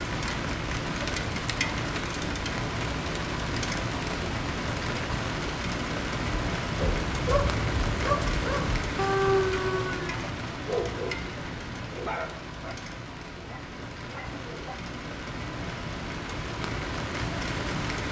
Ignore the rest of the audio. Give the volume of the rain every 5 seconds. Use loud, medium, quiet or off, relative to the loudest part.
loud, loud, medium, loud.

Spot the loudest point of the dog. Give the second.
9 s.